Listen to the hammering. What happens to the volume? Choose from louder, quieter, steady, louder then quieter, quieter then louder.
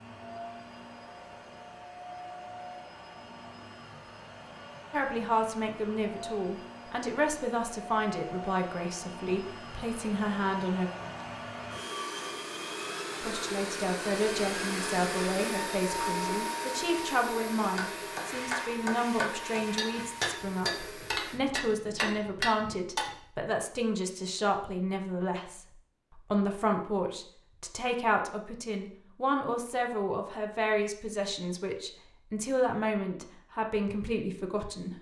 steady.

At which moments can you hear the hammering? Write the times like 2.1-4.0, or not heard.
17.8-23.1.